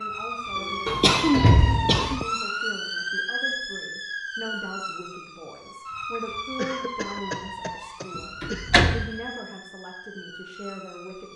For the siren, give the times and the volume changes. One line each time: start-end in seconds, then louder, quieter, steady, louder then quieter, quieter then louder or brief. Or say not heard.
0.0-11.3 quieter.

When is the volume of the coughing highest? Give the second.
1 s.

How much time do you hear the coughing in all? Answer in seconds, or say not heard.
4 s.